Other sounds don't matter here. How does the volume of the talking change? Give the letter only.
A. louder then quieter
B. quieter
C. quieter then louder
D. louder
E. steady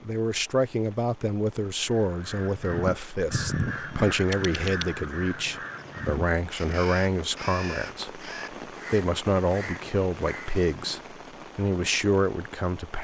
E.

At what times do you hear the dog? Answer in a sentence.
The dog can't be heard in this clip.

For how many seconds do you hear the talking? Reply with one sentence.
You can hear the talking for 13 seconds altogether.